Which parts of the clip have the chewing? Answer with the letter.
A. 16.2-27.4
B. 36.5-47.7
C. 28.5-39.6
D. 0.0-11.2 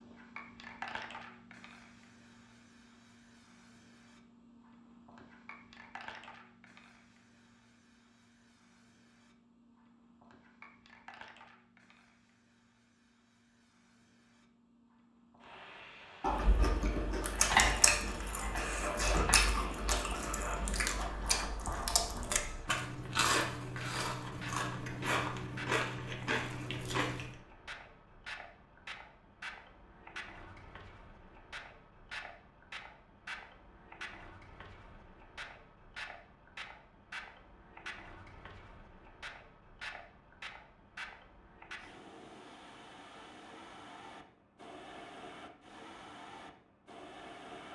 A.